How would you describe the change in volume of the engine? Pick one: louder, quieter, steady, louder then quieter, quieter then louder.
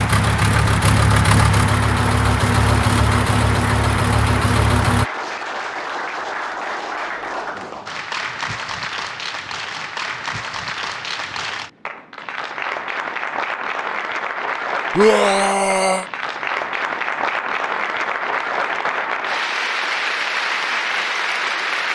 steady.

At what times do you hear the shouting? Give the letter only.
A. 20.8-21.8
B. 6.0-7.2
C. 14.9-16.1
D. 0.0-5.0
C.